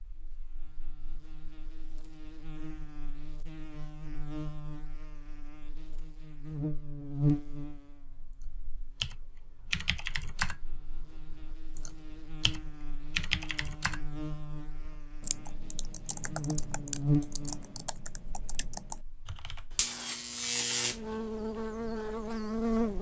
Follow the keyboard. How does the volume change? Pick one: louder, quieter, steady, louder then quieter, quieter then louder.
quieter.